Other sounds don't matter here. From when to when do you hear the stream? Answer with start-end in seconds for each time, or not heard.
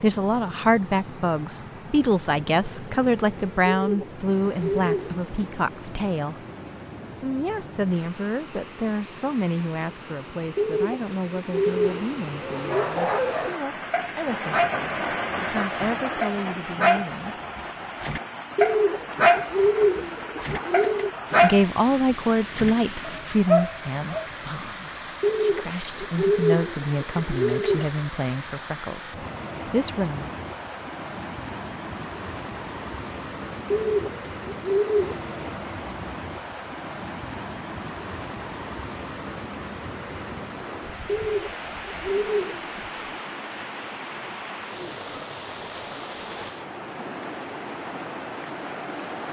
0.0-49.2.